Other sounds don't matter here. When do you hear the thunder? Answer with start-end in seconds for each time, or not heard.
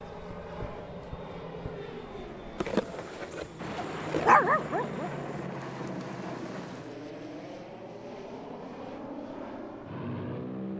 3.5-7.0.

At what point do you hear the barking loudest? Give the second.
4 s.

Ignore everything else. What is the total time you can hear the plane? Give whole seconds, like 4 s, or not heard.
11 s.